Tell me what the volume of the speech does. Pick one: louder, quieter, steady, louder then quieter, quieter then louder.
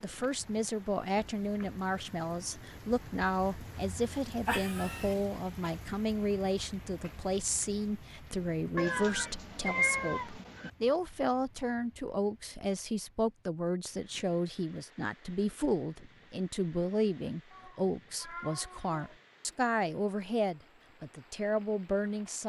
steady.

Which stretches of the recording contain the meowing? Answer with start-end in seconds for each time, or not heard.
4.5-5.2, 8.8-10.7, 17.5-19.1.